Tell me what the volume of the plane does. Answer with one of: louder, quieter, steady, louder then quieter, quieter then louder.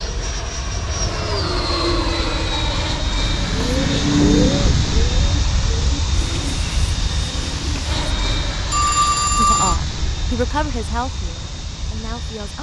quieter.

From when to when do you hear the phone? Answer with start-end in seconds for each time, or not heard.
8.7-9.8.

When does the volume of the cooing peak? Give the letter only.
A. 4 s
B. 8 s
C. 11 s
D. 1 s
A.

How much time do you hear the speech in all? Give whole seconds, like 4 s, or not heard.
3 s.